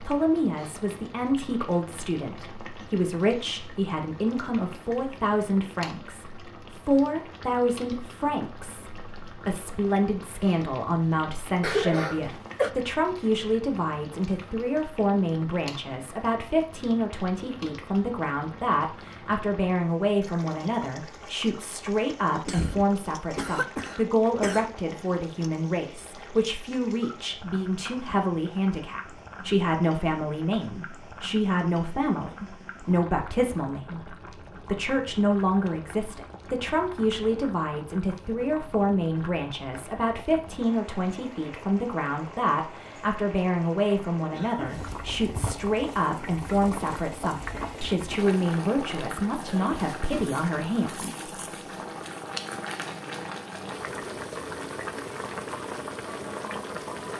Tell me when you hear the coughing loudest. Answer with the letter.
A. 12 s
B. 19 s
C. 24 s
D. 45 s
A.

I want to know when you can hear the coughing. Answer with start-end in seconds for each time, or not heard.
11.6-12.7, 22.4-24.7, 44.3-44.9.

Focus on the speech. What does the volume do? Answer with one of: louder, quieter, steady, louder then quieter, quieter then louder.
steady.